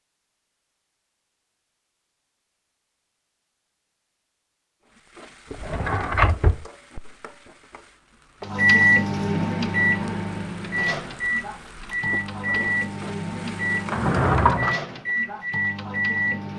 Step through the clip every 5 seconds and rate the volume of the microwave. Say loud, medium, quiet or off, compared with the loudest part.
off, loud, medium, medium.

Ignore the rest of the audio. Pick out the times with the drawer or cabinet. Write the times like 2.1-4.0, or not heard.
5.5-6.7, 13.8-14.8.